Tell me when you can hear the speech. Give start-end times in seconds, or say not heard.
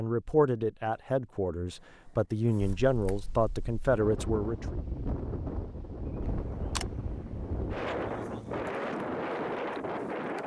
0.0-4.8.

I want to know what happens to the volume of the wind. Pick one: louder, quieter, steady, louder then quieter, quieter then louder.
louder.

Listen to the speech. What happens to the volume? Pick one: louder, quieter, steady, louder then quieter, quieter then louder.
quieter then louder.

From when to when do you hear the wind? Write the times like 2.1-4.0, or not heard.
2.8-10.4.